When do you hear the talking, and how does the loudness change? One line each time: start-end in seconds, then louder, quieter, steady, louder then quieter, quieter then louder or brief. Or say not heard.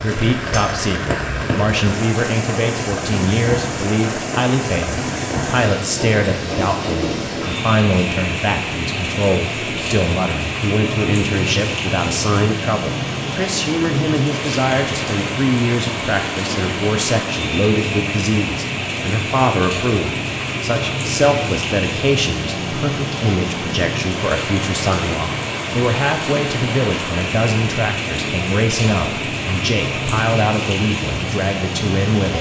0.0-32.3 steady.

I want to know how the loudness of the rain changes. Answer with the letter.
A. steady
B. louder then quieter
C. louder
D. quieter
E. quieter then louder
A.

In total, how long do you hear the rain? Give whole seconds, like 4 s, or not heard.
32 s.